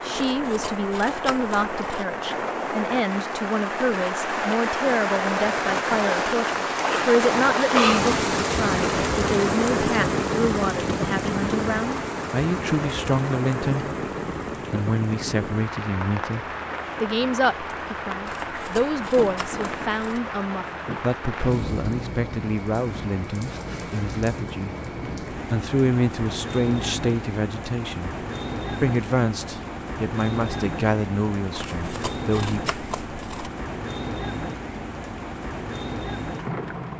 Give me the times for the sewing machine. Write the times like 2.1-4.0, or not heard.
not heard.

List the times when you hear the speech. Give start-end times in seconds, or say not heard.
0.0-13.9, 14.7-24.8, 25.4-28.1, 28.8-32.6.